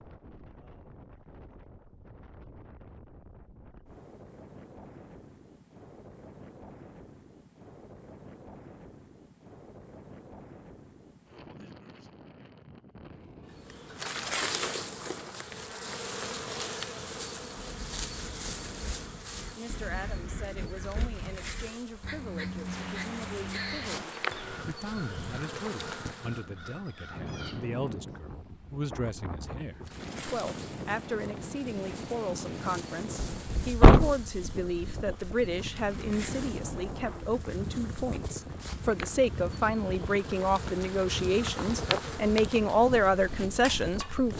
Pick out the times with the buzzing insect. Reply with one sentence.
You can hear the buzzing insect from 13.7 to 26.4 s and from 29.8 to 44.3 s.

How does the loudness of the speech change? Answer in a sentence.
The loudness of the speech goes up.